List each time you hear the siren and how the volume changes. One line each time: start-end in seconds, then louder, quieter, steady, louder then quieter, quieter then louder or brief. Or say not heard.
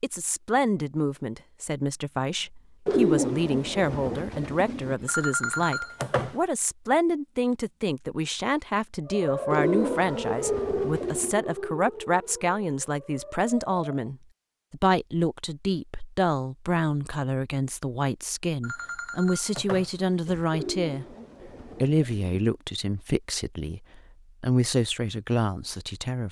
9.1-14.1 quieter.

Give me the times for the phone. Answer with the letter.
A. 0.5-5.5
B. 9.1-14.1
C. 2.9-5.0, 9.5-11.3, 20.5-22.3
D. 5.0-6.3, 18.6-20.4
D.